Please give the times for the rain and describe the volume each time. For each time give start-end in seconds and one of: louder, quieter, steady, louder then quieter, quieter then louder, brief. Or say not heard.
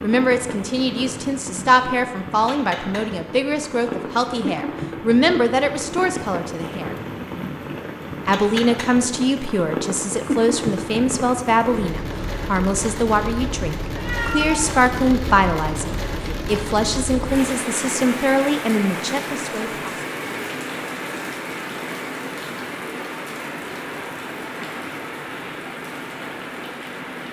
0.0-27.2 steady.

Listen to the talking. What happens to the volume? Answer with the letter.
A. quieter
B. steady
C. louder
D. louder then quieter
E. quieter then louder
B.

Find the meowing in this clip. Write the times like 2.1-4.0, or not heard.
13.9-14.8.